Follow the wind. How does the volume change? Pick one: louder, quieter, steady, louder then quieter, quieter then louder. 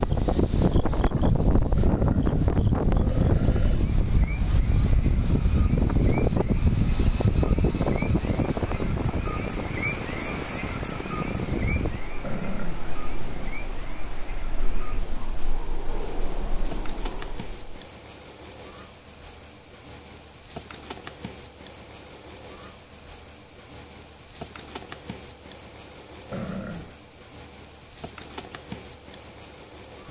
quieter.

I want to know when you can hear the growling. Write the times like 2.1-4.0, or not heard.
1.8-3.8, 12.2-13.6, 26.3-26.9.